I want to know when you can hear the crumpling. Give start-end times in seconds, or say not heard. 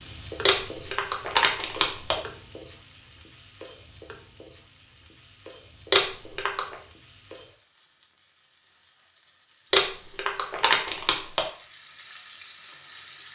0.5-2.1, 5.9-6.8, 9.7-11.4.